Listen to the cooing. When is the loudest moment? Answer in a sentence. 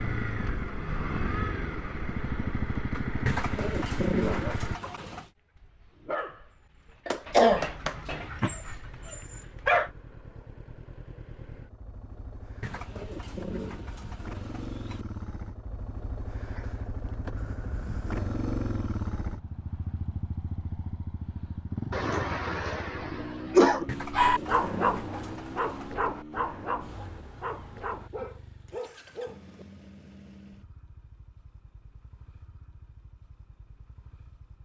The volume of the cooing peaks at 4 seconds.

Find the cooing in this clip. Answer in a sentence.
You can hear the cooing from 3.2 to 5.2 s, from 12.6 to 15.1 s and from 23.9 to 25.9 s.